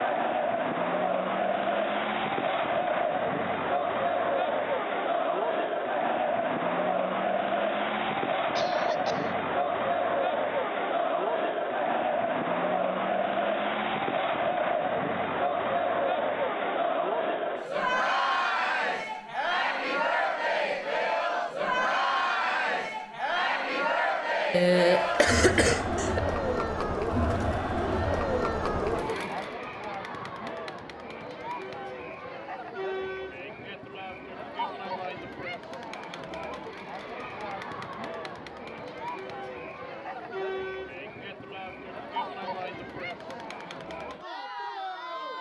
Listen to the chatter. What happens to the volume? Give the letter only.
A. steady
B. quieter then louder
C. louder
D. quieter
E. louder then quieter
D.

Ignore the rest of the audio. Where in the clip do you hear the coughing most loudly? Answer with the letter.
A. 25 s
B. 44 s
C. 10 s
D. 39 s
A.